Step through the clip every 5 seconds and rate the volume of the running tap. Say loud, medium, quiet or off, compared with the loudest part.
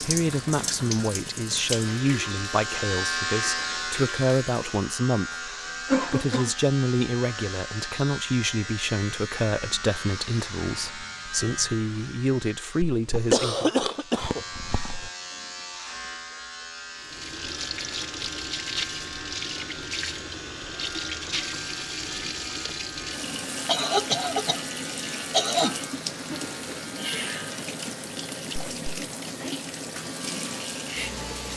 loud, off, off, loud, loud, loud, loud.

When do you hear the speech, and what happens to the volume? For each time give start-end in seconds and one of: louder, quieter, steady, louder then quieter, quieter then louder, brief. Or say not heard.
0.0-13.7 steady.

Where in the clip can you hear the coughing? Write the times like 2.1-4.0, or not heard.
5.8-6.5, 13.1-15.1, 23.6-25.8.